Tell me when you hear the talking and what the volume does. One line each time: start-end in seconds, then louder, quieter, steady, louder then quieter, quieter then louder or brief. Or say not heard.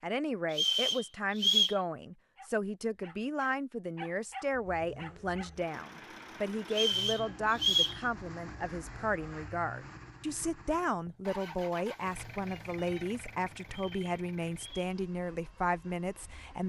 0.0-16.6 steady.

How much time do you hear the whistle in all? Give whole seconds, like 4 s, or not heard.
4 s.